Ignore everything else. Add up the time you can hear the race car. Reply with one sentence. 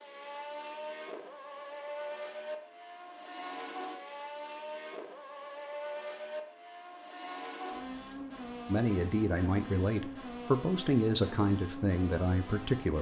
The race car can be heard for 13 seconds in total.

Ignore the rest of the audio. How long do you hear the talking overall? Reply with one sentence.
You can hear the talking for 4 seconds altogether.